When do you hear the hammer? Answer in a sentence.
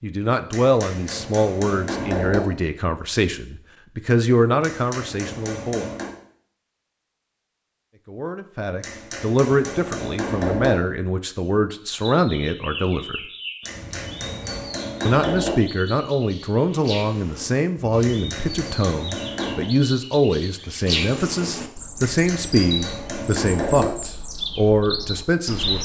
You can hear the hammer from 0.5 to 2.4 s, from 4.6 to 6.2 s, from 8.8 to 10.7 s, from 13.7 to 15.6 s, from 18.0 to 19.6 s and from 22.0 to 23.9 s.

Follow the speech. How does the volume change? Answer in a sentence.
The loudness of the speech stays about the same.